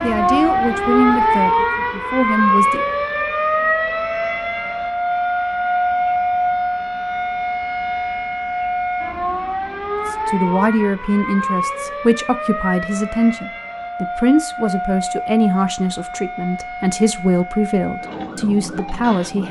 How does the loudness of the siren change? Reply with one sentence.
The volume of the siren goes down.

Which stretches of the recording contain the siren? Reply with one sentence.
You can hear the siren from 0.0 to 19.4 s.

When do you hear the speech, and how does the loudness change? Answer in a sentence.
You can hear the speech briefly from 0.0 to 2.9 s; and from 10.1 to 19.4 s, at a steady volume.